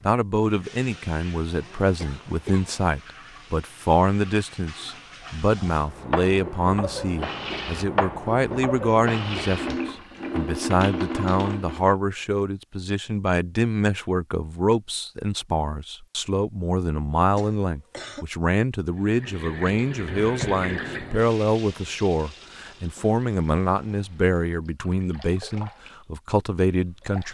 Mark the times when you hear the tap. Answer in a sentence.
The tap can be heard from 0.4 to 11.9 s and from 18.9 to 27.2 s.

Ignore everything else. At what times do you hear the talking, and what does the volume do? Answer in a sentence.
The talking can be heard from 0.0 to 27.2 s, at a steady volume.